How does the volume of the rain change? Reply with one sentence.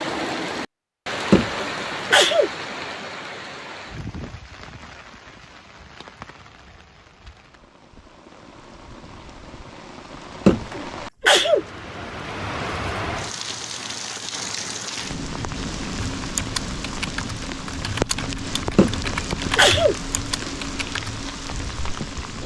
The loudness of the rain goes down, then up.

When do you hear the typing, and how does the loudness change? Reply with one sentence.
The typing can be heard from 15.9 to 21.9 s, getting quieter.